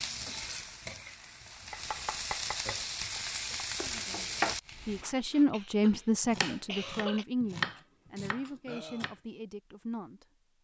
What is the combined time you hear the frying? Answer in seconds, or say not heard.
5 s.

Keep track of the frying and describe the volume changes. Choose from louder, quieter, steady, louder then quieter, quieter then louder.
louder.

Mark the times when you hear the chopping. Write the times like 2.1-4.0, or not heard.
1.7-9.2.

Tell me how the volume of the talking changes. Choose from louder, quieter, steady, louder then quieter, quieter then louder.
louder then quieter.